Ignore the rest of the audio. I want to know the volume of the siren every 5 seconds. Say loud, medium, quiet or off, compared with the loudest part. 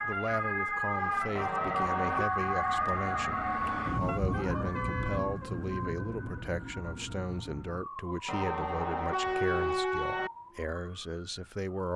loud, medium, quiet.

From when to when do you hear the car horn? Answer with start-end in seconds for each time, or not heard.
1.4-2.3, 4.0-5.5, 8.2-10.3.